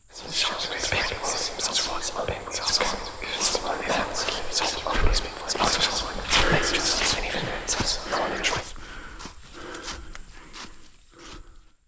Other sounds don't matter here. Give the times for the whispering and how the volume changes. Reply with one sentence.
The whispering can be heard from 0.1 to 8.8 s, at a steady volume.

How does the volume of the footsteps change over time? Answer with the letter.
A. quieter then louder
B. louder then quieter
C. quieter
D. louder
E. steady
B.